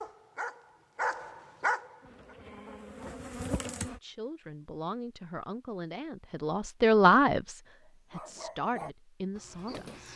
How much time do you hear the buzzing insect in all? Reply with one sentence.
The buzzing insect can be heard for 2 seconds in total.